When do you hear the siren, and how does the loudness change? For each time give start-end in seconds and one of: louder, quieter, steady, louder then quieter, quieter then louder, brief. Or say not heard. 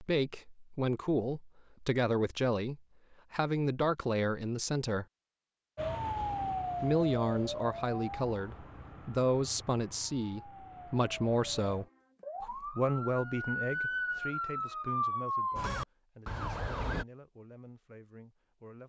5.8-17.1 quieter then louder.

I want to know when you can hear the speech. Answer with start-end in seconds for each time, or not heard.
0.0-5.0, 6.8-18.8.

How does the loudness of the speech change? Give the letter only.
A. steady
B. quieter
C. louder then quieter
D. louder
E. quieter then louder
B.